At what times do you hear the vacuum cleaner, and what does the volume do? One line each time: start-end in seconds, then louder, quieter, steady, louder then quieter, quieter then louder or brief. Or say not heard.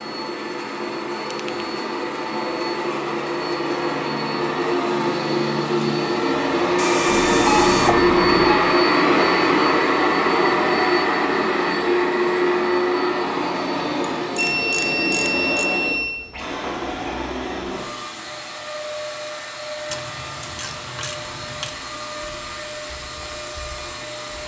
0.0-24.4 louder then quieter.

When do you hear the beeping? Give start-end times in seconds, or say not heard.
7.0-8.6, 14.3-16.1.